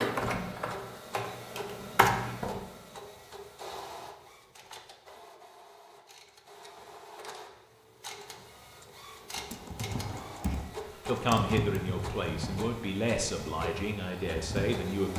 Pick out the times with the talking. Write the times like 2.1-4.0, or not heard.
10.5-15.1.